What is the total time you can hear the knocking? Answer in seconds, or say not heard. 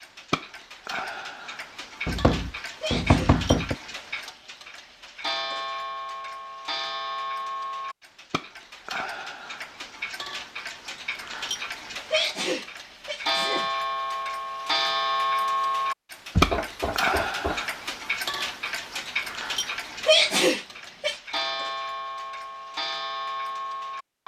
3 s.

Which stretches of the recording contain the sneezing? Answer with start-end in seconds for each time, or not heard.
2.8-3.4, 12.1-13.7, 20.1-21.2.